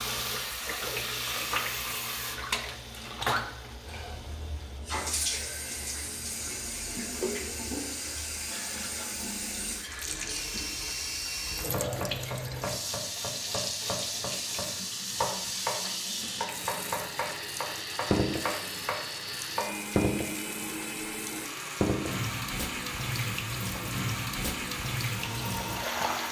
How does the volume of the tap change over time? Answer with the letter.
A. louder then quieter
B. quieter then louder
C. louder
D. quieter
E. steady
E.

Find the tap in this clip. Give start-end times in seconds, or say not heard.
0.0-26.2.